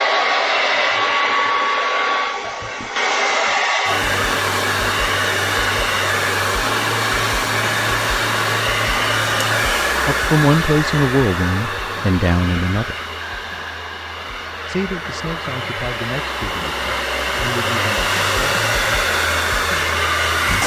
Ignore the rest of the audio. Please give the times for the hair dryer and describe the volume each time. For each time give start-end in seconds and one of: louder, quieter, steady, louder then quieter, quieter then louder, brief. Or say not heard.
0.0-20.6 quieter then louder.